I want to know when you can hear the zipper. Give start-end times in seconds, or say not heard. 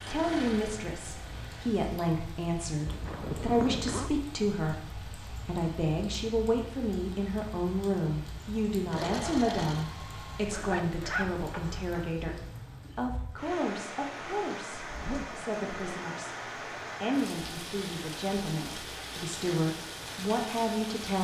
2.9-4.1, 10.5-12.1, 14.8-15.4.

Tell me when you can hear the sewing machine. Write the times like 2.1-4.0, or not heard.
0.0-1.9, 8.9-10.6.